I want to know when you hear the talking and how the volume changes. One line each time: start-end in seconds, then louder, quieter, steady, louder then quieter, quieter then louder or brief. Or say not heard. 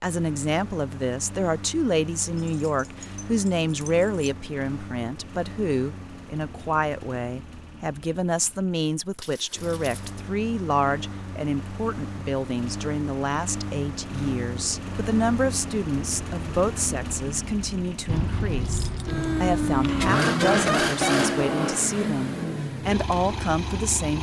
0.0-24.1 steady.